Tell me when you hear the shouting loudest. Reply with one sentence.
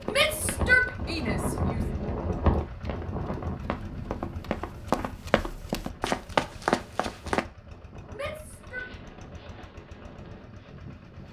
The loudest moment of the shouting is at 1 second.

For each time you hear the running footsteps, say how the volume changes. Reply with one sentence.
You can hear the running footsteps from 0.0 to 7.5 s, getting louder.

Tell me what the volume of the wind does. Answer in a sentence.
The loudness of the wind goes down.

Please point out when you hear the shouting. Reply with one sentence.
You can hear the shouting from 0.1 to 1.8 s and from 8.1 to 8.8 s.